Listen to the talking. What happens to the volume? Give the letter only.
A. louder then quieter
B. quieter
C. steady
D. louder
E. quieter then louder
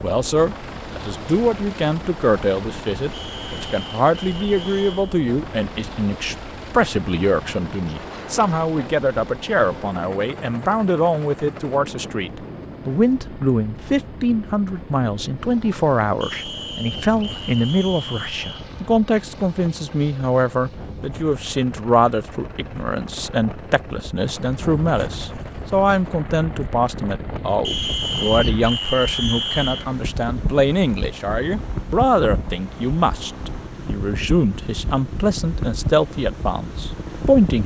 C.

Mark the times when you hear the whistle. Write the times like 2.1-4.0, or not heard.
3.1-5.2, 16.2-18.6, 27.6-29.9.